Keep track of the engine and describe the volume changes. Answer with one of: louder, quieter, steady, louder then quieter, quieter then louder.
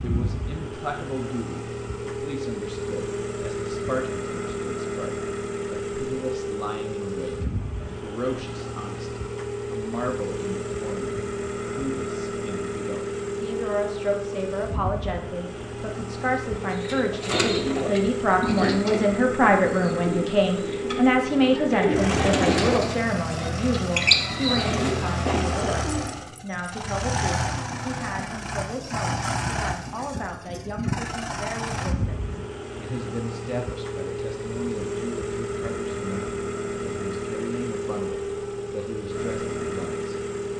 steady.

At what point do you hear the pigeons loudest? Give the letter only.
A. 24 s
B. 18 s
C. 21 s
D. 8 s
A.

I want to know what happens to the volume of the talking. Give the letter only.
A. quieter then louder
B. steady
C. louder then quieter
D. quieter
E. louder
C.